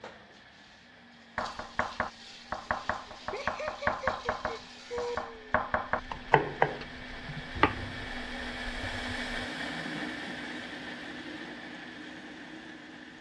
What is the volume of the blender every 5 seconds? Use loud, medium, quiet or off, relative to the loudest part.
quiet, loud, loud.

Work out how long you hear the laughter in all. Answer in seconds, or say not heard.
2 s.